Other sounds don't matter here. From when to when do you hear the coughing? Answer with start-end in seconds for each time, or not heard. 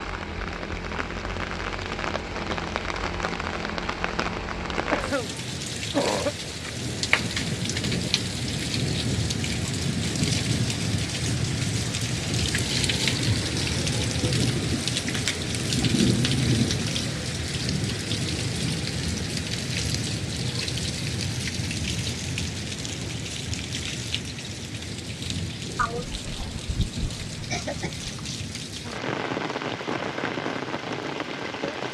4.9-6.3, 25.8-28.1.